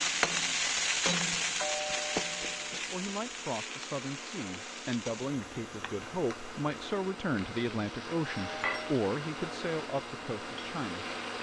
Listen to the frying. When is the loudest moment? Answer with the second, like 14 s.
1 s.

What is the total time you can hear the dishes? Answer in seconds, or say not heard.
not heard.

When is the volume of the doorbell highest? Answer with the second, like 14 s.
2 s.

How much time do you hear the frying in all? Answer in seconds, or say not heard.
11 s.